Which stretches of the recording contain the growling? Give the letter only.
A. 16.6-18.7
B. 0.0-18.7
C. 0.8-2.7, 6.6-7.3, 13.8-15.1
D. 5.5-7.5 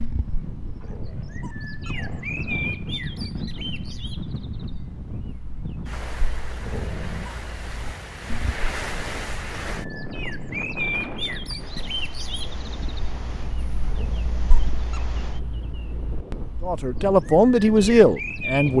C.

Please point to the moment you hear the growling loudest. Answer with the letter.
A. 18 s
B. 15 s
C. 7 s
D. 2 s
C.